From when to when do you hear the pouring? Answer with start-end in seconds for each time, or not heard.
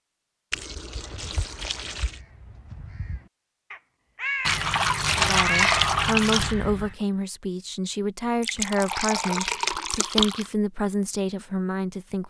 0.5-2.2, 4.5-6.5, 8.4-10.5.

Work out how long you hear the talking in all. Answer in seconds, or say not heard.
7 s.